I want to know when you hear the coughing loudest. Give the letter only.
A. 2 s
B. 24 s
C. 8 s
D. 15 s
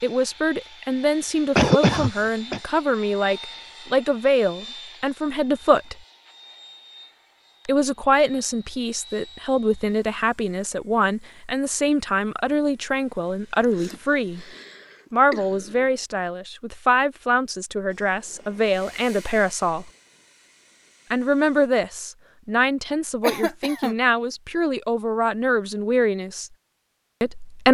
A.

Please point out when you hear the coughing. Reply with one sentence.
The coughing can be heard from 1.6 to 2.6 s, from 13.6 to 15.9 s and from 23.2 to 23.9 s.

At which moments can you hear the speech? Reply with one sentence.
You can hear the speech from 0.0 to 6.0 s, from 7.7 to 14.4 s, from 15.1 to 19.9 s, from 21.1 to 26.5 s and from 27.2 to 27.7 s.